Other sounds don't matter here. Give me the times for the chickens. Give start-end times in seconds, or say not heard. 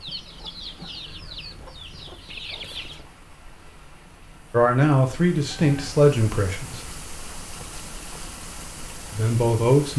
0.0-3.0.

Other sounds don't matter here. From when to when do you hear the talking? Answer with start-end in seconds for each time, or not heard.
4.5-6.8, 9.1-9.9.